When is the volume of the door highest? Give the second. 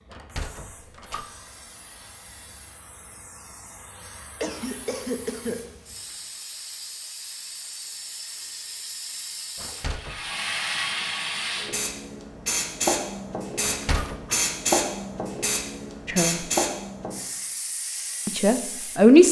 14 s.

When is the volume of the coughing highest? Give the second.
5 s.